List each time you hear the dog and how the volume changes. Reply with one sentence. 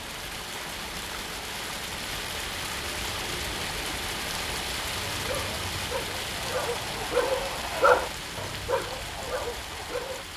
You can hear the dog from 5.0 to 10.2 s, getting louder then quieter.